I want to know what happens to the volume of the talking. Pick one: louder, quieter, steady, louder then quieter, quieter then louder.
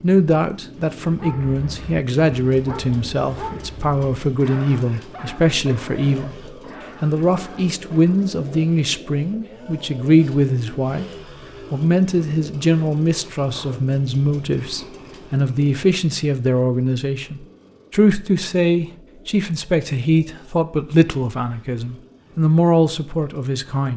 steady.